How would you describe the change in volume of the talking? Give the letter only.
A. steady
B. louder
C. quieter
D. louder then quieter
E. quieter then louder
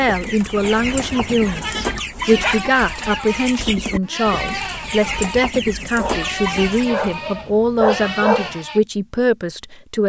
A.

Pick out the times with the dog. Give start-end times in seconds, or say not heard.
1.3-3.0, 6.0-8.6.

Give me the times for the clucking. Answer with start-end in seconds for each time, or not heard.
0.0-7.1.